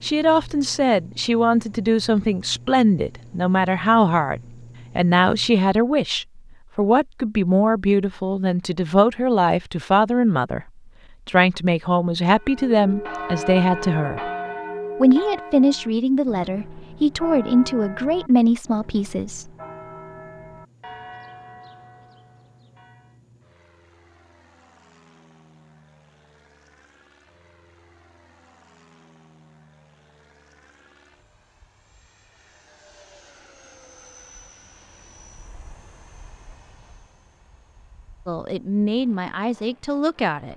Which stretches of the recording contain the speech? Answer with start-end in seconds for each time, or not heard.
0.0-10.7, 11.2-14.3, 15.0-19.4, 38.2-40.5.